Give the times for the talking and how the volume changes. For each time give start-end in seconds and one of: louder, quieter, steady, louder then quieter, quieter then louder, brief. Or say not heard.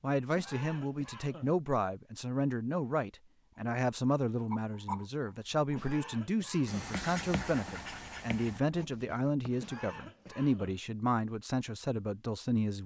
0.0-12.8 steady.